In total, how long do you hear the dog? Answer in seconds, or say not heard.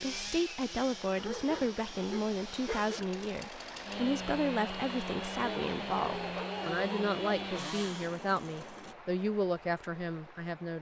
4 s.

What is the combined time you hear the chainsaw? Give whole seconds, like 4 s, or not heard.
9 s.